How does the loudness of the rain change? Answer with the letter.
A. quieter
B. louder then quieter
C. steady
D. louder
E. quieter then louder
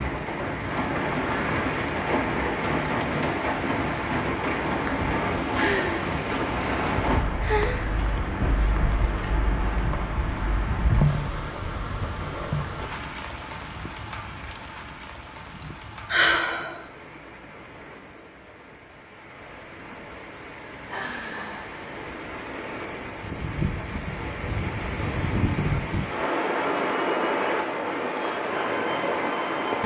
E.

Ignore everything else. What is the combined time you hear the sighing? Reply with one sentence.
You can hear the sighing for 5 seconds altogether.